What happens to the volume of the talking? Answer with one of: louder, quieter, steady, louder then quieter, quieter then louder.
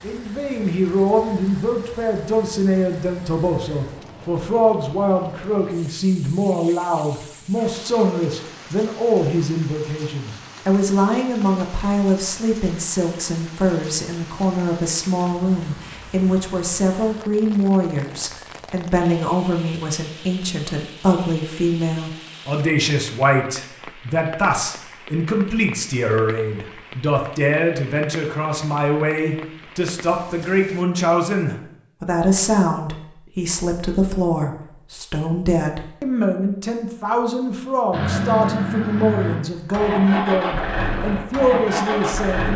steady.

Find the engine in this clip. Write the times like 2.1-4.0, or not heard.
37.9-42.5.